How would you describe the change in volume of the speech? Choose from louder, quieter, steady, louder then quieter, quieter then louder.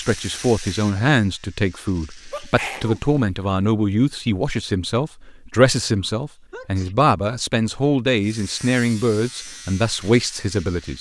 steady.